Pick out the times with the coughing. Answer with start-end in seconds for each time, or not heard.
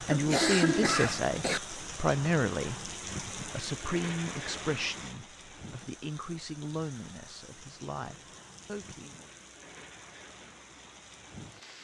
0.1-1.6.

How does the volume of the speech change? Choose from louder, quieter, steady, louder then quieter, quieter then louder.
quieter.